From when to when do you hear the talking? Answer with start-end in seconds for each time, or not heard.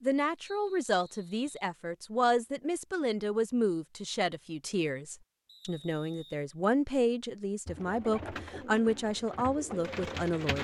0.0-10.6.